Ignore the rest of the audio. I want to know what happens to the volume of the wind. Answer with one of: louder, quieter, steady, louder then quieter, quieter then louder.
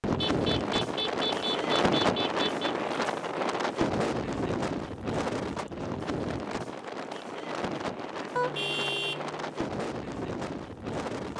quieter.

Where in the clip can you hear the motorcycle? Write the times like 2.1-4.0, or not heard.
not heard.